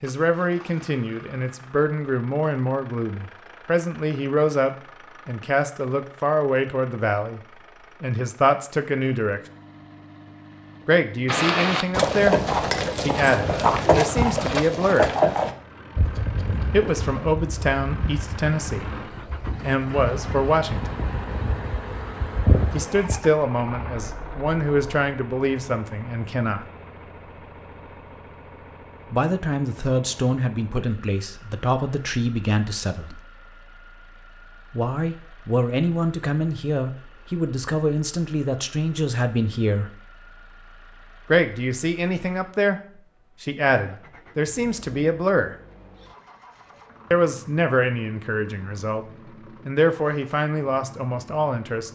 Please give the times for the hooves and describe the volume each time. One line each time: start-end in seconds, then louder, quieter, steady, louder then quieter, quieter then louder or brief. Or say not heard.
11.2-23.2 quieter then louder.